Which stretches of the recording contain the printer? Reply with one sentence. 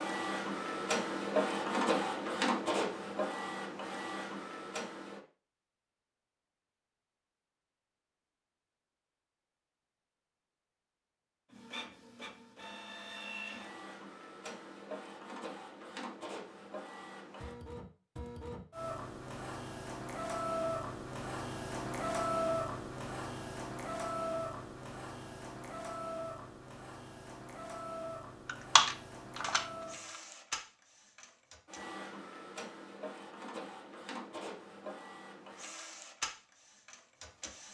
You can hear the printer from 0.0 to 5.2 s and from 11.5 to 37.6 s.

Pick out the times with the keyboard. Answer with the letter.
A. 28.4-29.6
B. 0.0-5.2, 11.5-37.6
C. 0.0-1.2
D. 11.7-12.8
A.